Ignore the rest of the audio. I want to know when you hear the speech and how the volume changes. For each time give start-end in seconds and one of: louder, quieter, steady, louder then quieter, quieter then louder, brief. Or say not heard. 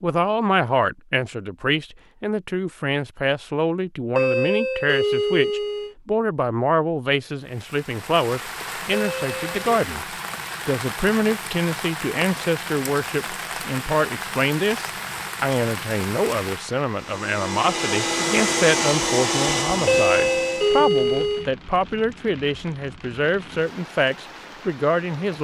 0.0-10.1 steady
10.7-25.3 steady.